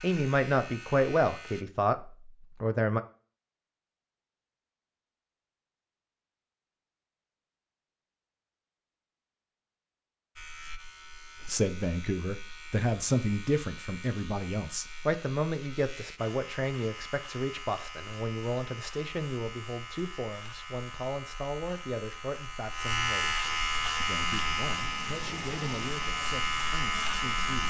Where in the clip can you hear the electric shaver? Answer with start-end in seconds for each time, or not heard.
0.0-1.6, 10.3-27.6.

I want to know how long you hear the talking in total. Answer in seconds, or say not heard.
19 s.